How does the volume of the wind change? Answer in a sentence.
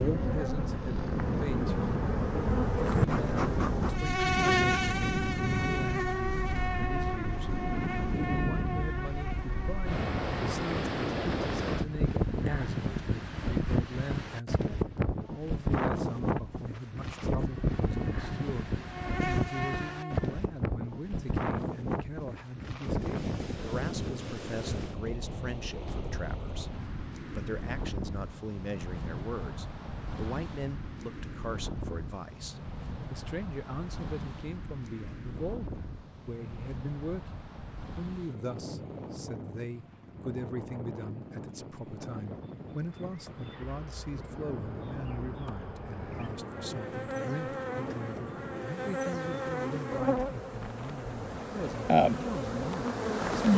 The volume of the wind goes down.